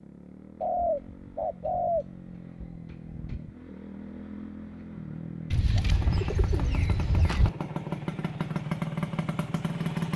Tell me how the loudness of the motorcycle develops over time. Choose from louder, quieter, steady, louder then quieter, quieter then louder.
louder.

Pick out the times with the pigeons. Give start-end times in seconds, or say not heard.
0.6-3.5, 5.5-7.5.